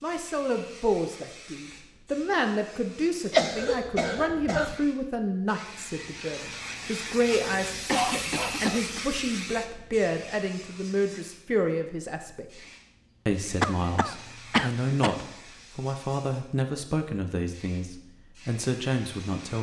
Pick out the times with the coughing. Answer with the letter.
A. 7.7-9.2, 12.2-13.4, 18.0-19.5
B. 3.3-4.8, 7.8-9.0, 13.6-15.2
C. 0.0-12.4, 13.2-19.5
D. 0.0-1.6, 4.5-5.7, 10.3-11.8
B.